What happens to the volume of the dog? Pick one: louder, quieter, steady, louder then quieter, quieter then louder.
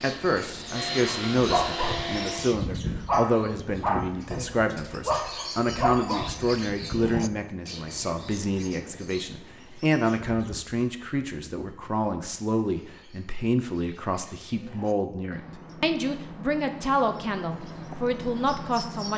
steady.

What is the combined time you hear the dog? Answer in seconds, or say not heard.
6 s.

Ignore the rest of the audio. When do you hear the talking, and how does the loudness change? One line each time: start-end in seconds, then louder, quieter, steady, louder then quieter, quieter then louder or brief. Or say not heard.
0.0-19.1 steady.